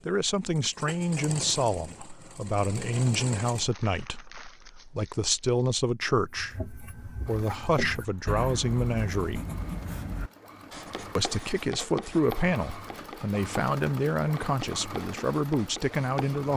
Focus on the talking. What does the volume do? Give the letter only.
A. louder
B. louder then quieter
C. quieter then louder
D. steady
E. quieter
D.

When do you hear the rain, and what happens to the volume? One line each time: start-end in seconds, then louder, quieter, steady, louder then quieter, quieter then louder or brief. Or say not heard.
not heard.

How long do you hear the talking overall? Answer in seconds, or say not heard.
15 s.